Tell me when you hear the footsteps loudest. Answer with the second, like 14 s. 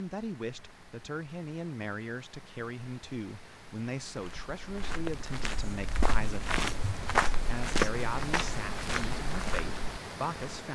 7 s.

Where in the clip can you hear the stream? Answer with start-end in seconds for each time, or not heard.
0.0-10.6.